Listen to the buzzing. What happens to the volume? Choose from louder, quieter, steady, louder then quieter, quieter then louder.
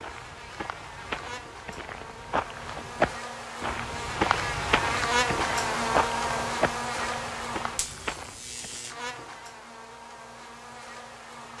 louder then quieter.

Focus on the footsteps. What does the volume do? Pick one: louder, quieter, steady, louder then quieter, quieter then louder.
louder then quieter.